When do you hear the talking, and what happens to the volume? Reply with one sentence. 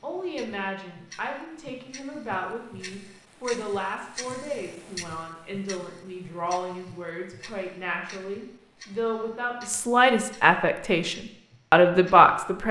The talking can be heard from 0.0 to 12.6 s, getting louder.